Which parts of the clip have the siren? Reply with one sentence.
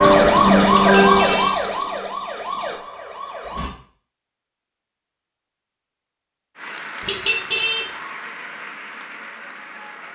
You can hear the siren from 0.0 to 3.7 s.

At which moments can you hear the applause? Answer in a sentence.
You can hear the applause from 6.5 to 10.0 s.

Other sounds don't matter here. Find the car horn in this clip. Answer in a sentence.
You can hear the car horn from 0.8 to 1.6 s and from 7.0 to 7.8 s.